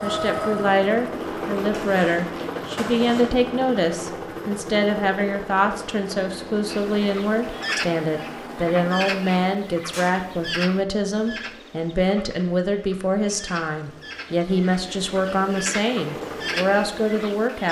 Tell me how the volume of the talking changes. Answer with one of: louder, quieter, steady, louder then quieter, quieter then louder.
steady.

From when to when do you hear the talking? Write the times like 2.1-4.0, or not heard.
0.0-17.6.